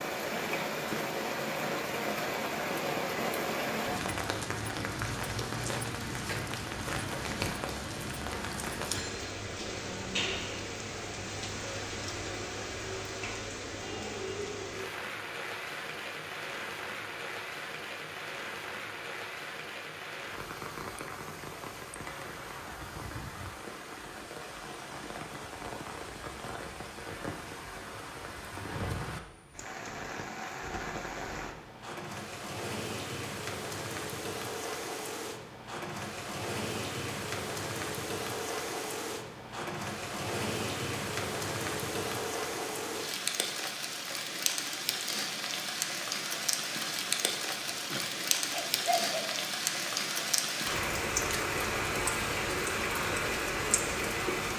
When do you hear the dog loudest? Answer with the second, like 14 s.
49 s.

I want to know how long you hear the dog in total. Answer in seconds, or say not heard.
2 s.